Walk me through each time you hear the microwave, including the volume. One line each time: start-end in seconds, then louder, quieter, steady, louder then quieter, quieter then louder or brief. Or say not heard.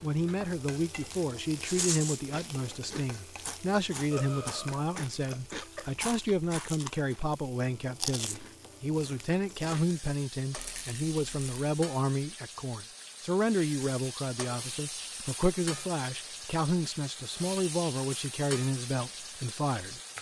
not heard.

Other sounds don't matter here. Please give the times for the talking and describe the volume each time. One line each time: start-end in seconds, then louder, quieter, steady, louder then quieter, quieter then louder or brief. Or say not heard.
0.0-20.0 steady.